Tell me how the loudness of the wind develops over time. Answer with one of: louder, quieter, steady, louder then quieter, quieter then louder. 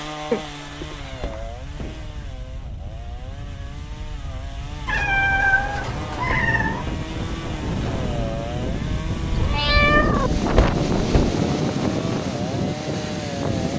louder.